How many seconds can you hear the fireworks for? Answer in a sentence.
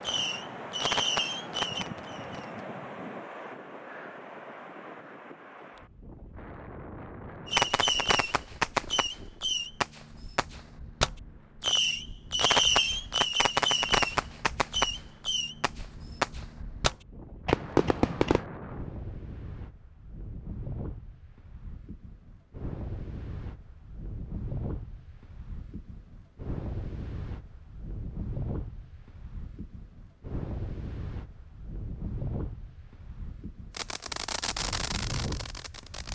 You can hear the fireworks for 16 seconds altogether.